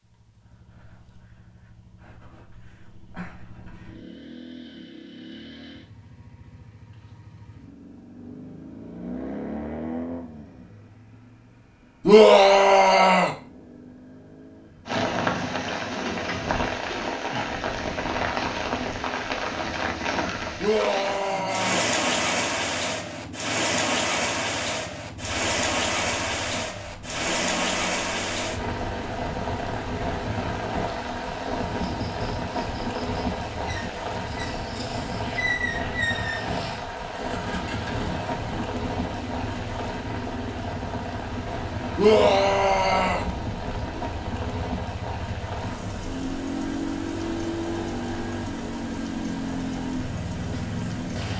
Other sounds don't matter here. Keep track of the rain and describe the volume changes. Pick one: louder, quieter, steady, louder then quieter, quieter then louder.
quieter.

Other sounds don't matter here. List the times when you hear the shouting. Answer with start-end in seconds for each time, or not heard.
12.1-13.3, 20.6-21.9, 42.0-43.2.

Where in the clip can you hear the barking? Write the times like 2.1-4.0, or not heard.
not heard.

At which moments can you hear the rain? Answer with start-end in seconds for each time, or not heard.
14.8-51.3.